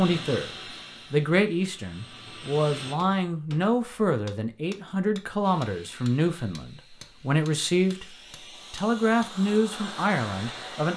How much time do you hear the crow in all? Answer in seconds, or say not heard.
not heard.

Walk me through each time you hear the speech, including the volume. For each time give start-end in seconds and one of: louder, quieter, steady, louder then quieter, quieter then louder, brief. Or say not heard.
0.0-0.5 brief
1.1-10.9 steady.